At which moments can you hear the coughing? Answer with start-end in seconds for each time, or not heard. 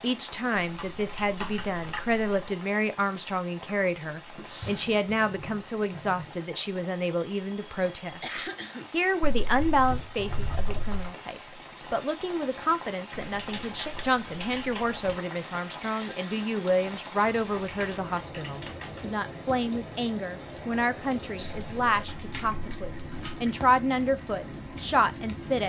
8.2-8.9, 15.8-16.5.